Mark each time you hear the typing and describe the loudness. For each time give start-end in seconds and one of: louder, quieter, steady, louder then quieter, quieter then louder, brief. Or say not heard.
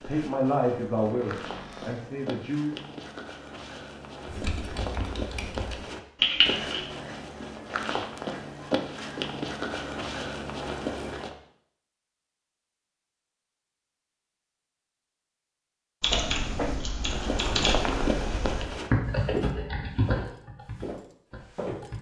4.2-6.8 brief
16.0-21.9 louder then quieter.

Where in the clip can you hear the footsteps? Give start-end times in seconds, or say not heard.
0.0-11.3, 17.0-21.9.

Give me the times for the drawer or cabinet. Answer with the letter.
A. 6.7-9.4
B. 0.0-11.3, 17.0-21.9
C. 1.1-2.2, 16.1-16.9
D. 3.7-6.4
C.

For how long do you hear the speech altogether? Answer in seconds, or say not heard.
3 s.